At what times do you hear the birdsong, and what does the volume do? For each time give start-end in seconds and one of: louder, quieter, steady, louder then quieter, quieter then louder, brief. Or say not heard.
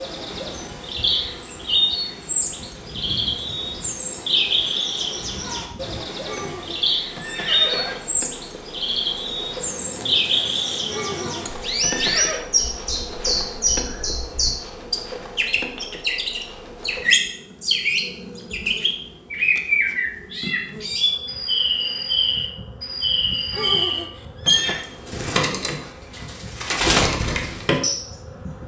0.0-28.6 steady.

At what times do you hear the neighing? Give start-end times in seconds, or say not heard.
6.2-8.0, 10.9-12.4, 23.5-24.9.